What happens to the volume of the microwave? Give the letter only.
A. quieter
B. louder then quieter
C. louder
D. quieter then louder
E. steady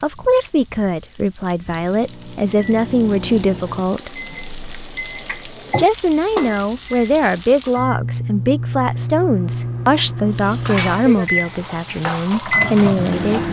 C.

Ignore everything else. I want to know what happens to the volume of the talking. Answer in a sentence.
The volume of the talking stays about the same.